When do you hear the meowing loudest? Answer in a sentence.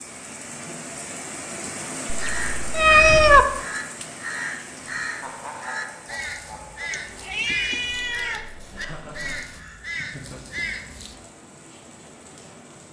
The volume of the meowing peaks at 3 seconds.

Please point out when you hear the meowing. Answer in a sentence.
You can hear the meowing from 2.1 to 3.5 s and from 6.9 to 8.4 s.